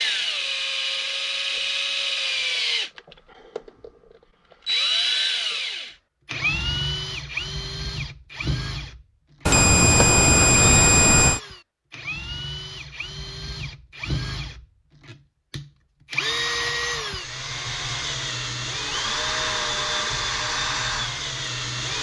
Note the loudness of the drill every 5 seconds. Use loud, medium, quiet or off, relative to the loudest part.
loud, loud, medium, loud, loud.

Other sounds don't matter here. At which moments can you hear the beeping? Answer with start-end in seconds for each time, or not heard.
9.4-11.4.